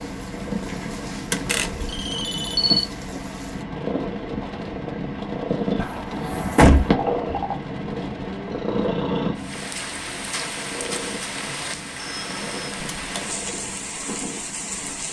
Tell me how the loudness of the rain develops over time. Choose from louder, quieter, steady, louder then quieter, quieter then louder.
louder.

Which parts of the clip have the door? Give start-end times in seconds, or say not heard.
1.3-1.9, 5.8-7.0, 12.9-13.3.